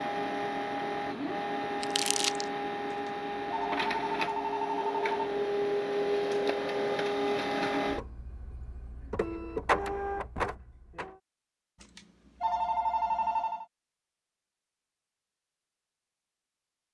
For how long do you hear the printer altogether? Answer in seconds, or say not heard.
11 s.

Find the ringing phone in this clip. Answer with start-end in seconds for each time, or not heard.
2.9-5.2, 11.8-13.7.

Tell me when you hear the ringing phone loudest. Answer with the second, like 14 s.
13 s.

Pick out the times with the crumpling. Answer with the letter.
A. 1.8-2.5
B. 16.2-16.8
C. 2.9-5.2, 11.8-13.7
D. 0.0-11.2
A.